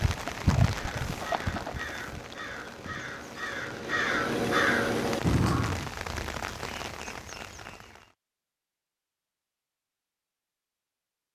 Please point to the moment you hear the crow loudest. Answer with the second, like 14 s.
5 s.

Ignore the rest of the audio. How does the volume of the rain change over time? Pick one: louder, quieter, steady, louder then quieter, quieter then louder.
quieter then louder.